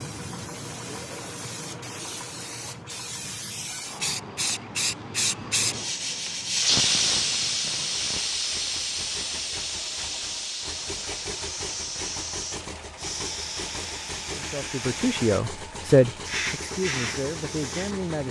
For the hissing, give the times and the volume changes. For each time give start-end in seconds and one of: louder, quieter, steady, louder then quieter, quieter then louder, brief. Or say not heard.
0.0-18.1 louder then quieter.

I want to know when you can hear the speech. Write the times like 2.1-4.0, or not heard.
14.3-18.2.